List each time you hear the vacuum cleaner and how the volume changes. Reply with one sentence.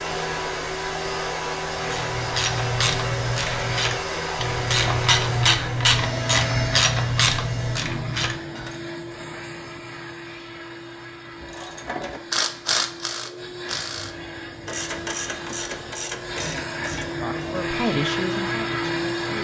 The vacuum cleaner can be heard from 0.0 to 19.4 s, getting quieter then louder.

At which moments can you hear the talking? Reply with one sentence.
You can hear the talking from 17.2 to 19.3 s.